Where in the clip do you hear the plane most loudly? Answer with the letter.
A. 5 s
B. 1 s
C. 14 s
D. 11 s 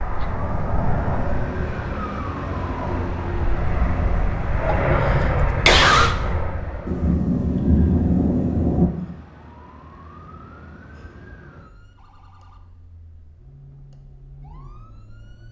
A.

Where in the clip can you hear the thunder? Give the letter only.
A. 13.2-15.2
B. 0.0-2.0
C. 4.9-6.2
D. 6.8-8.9
D.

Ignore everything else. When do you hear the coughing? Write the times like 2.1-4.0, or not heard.
4.9-6.2.